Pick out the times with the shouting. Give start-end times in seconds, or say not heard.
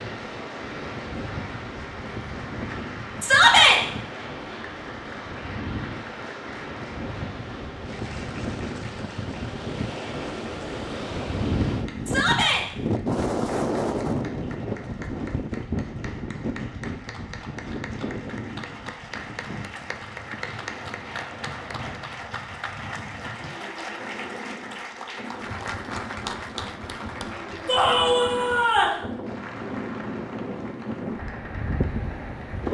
3.2-3.8, 12.1-12.7, 27.6-29.0.